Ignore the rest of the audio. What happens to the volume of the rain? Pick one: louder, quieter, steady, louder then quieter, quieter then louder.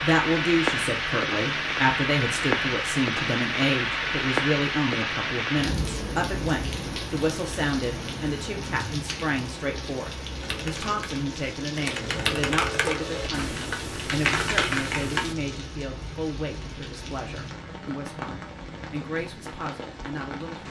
quieter.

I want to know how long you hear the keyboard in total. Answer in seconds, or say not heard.
5 s.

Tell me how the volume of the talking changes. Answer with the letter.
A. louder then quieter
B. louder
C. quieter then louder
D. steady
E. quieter
E.